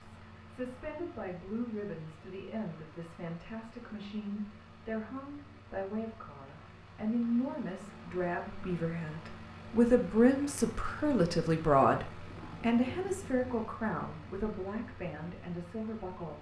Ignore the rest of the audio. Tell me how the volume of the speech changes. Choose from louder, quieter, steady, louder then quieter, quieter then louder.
louder then quieter.